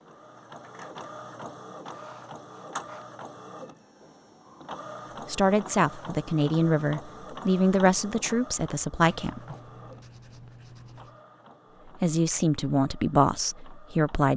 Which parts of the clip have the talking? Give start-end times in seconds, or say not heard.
5.2-9.4, 12.0-14.3.